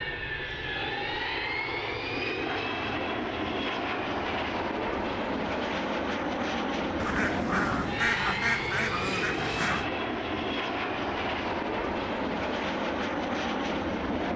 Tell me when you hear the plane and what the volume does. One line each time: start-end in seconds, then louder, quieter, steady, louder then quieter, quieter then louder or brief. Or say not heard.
0.0-14.3 steady.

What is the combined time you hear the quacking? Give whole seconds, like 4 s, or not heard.
3 s.